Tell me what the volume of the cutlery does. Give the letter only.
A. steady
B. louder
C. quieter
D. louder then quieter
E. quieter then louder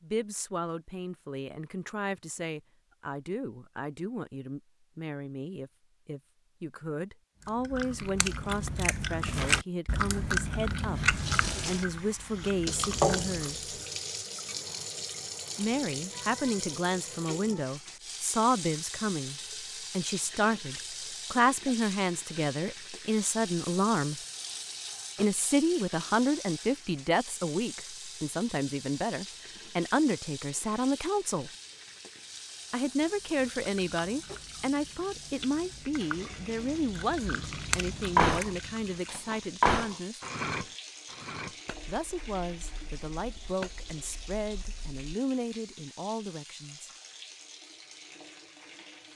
E.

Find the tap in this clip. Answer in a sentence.
The tap can be heard from 11.1 to 49.1 s.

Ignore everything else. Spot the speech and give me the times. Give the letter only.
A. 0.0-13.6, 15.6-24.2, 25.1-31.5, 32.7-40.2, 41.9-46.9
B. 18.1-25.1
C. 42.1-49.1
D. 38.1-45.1
A.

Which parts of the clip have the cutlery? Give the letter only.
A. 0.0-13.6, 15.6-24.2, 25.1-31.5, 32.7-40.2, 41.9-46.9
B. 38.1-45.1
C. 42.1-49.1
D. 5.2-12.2
B.